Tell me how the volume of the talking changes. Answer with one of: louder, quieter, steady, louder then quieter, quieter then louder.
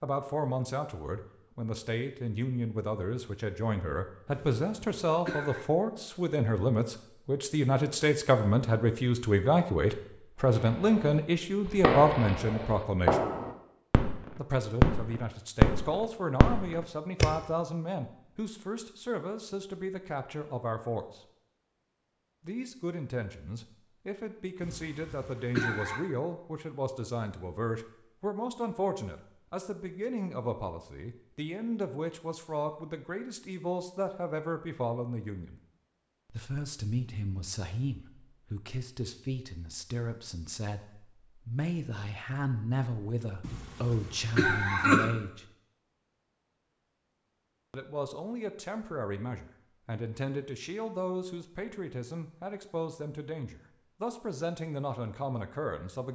quieter.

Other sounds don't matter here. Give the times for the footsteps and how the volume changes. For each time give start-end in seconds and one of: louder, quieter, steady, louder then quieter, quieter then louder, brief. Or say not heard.
not heard.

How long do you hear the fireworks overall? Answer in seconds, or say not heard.
6 s.